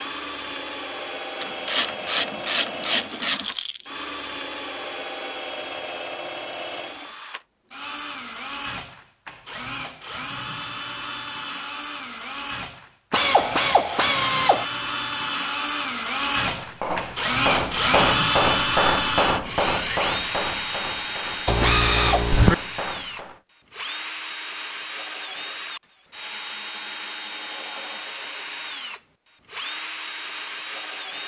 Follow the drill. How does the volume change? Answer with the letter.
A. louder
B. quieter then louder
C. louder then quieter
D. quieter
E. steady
C.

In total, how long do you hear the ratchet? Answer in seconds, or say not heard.
5 s.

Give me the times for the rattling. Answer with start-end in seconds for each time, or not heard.
2.9-3.9.